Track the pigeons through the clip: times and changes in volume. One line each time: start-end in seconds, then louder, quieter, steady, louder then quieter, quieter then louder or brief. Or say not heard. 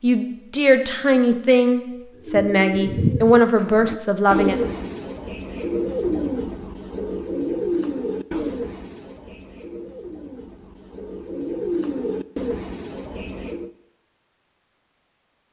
2.2-13.7 quieter then louder.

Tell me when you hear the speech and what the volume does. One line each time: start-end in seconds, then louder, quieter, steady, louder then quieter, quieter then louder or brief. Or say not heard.
0.0-4.5 steady.